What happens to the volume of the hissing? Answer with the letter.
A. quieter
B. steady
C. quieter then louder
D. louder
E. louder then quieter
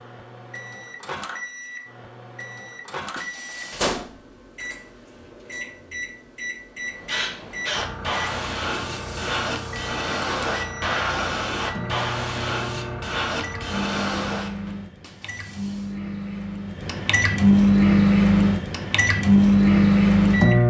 B.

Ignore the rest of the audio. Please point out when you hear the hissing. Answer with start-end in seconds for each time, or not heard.
6.8-14.7.